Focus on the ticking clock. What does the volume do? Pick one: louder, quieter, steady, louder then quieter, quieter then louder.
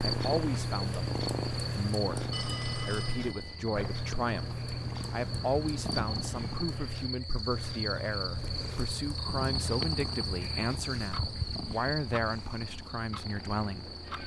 quieter.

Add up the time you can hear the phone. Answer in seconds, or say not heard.
2 s.